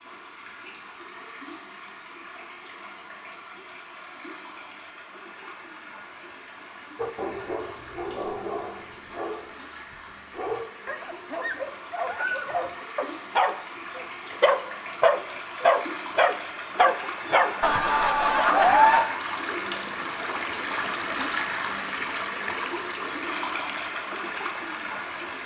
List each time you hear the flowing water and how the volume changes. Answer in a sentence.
The flowing water can be heard from 0.0 to 25.4 s, getting louder.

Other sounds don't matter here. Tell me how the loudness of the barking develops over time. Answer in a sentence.
The volume of the barking goes up.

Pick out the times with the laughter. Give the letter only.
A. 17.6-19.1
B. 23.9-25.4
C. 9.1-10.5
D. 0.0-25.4
A.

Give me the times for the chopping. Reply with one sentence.
You can't hear the chopping here.